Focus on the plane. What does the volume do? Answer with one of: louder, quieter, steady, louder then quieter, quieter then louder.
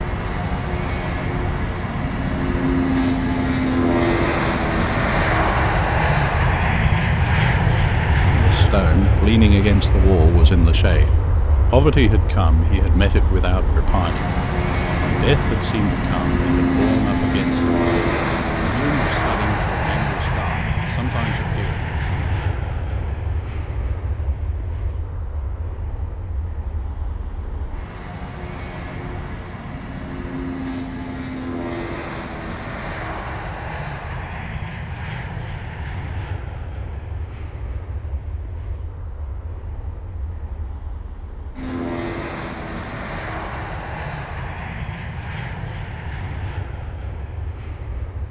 quieter.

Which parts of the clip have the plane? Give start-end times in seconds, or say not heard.
0.0-48.2.